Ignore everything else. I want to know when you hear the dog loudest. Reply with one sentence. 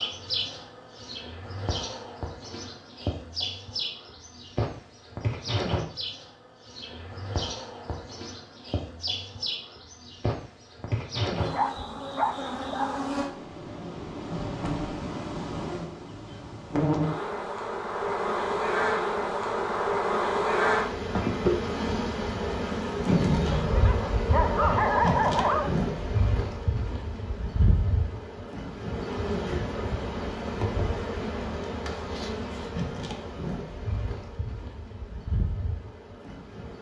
The volume of the dog peaks at 25 seconds.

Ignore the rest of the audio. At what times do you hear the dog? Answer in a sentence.
The dog can be heard from 11.5 to 13.0 s and from 23.5 to 25.8 s.